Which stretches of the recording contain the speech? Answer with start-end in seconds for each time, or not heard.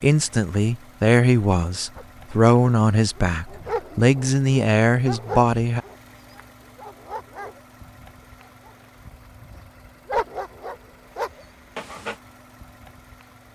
0.0-5.8.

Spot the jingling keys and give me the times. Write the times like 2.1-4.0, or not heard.
not heard.